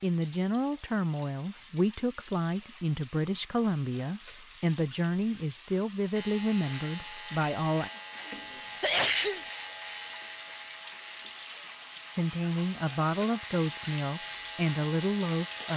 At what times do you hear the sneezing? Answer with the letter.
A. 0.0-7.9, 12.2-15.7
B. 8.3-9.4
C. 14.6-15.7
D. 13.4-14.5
B.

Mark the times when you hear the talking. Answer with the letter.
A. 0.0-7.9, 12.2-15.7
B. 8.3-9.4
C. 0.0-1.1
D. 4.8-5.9
A.